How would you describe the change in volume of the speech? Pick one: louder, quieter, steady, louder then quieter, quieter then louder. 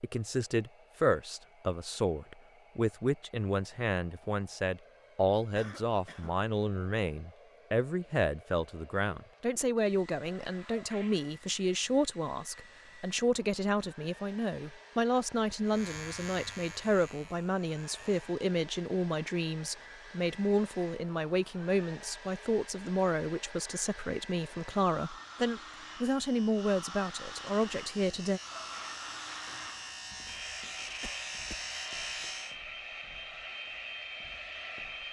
steady.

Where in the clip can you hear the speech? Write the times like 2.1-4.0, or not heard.
0.0-28.4.